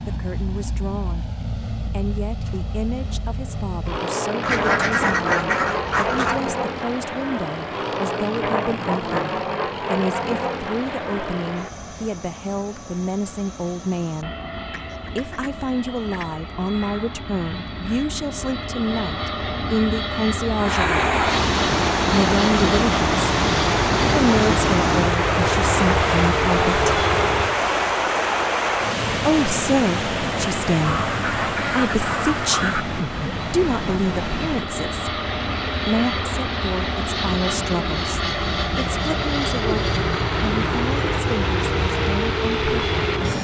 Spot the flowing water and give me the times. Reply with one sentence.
The flowing water can be heard from 20.6 to 43.3 s.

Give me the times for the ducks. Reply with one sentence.
You can hear the ducks from 4.4 to 6.4 s, from 14.7 to 16.4 s and from 30.8 to 32.9 s.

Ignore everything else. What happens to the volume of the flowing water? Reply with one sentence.
The loudness of the flowing water goes down.